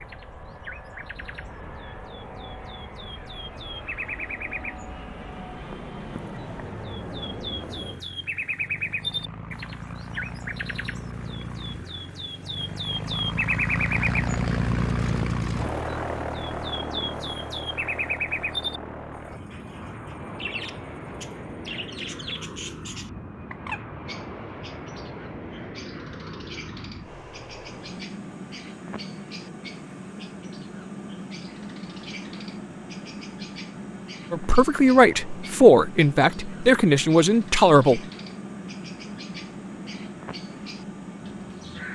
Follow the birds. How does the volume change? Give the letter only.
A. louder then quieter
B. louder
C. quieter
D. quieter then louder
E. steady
A.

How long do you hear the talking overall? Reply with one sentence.
The talking can be heard for 4 seconds in total.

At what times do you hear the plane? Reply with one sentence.
You can hear the plane from 0.0 to 41.9 s.